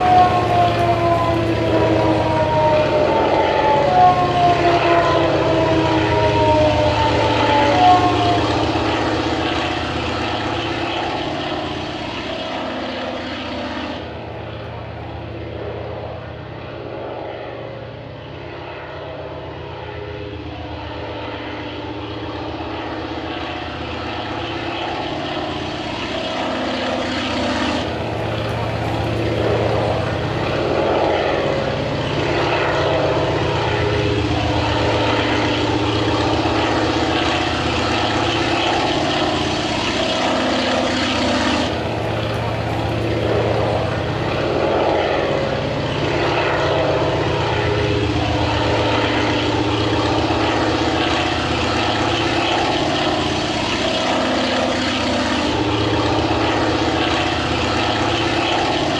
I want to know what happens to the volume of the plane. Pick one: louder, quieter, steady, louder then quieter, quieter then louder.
quieter then louder.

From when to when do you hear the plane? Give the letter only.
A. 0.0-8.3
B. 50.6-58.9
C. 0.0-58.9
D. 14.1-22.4
C.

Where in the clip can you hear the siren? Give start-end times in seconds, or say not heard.
0.0-8.3.